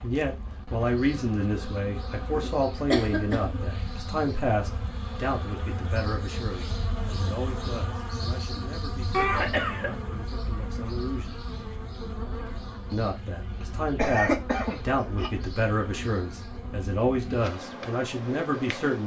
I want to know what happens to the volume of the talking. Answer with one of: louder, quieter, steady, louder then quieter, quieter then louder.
quieter then louder.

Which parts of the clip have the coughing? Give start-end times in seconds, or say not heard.
2.3-3.6, 9.1-9.9, 13.9-15.3.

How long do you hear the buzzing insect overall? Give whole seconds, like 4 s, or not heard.
19 s.